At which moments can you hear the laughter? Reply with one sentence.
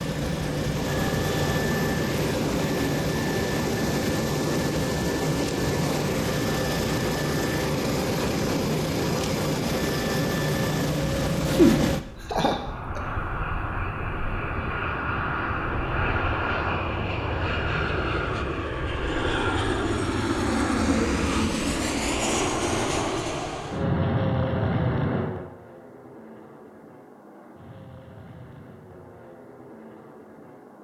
The laughter can be heard from 11.4 to 13.0 s.